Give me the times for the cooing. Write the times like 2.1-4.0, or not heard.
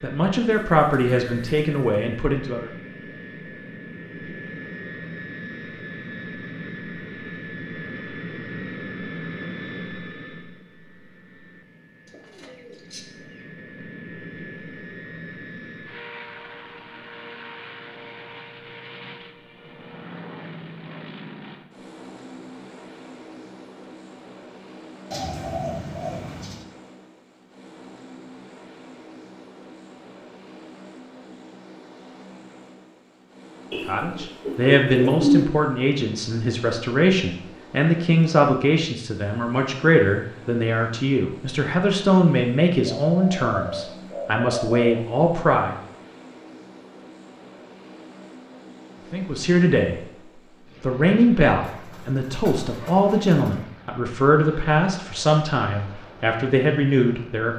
0.5-2.0, 12.1-13.4, 25.1-26.6, 33.7-35.5, 42.9-45.1, 51.6-53.6.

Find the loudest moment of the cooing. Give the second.
35 s.